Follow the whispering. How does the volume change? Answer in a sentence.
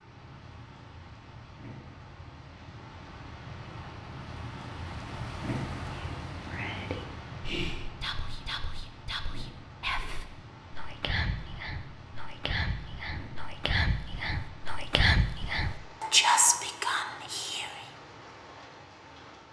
The loudness of the whispering goes up.